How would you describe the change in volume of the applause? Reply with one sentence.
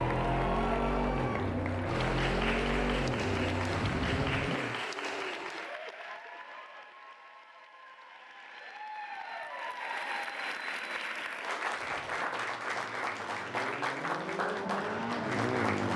The loudness of the applause goes down, then up.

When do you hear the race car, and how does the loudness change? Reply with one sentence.
You can hear the race car from 0.0 to 4.8 s, at a steady volume; and from 11.7 to 15.9 s, getting louder.